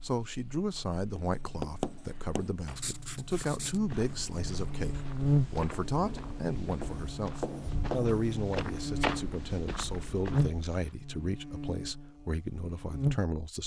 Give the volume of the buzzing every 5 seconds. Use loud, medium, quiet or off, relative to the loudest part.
quiet, loud, loud.